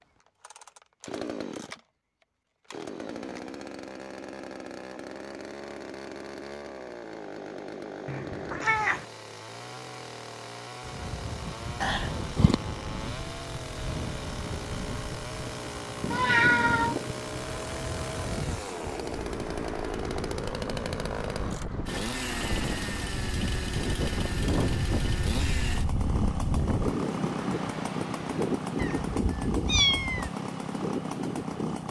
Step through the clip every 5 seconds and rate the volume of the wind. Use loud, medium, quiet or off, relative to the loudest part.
off, off, medium, medium, loud, loud, loud.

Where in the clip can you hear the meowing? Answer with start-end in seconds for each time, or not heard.
8.1-9.1, 16.1-16.9, 28.8-30.3.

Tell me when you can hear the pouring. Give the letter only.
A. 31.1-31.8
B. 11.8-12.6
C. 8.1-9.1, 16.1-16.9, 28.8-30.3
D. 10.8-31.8
B.